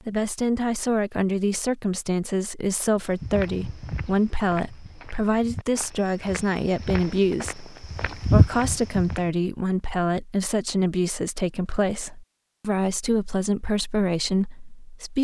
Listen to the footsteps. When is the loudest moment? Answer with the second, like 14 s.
8 s.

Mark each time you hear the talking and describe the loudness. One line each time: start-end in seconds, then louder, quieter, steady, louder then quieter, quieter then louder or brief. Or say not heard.
0.1-15.1 steady.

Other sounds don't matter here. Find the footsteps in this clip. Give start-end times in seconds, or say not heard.
3.2-9.2.